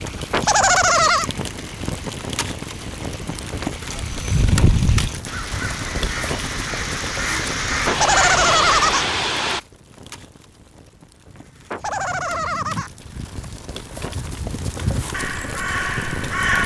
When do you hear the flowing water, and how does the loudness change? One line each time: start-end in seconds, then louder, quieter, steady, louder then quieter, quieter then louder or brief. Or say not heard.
0.0-9.6 louder.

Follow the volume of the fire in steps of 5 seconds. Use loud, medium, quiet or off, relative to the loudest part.
loud, loud, medium, loud.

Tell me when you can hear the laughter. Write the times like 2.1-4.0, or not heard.
0.3-1.3, 7.8-9.1, 11.7-12.9.